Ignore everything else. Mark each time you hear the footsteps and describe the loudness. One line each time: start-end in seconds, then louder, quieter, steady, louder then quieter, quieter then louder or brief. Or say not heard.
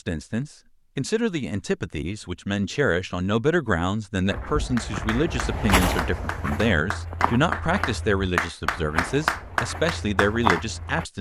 4.2-11.1 quieter then louder.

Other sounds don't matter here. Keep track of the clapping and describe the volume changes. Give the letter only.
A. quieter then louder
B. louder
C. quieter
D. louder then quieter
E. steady
B.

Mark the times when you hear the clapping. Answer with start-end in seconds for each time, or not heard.
4.8-10.7.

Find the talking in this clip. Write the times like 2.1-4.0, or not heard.
0.0-11.1.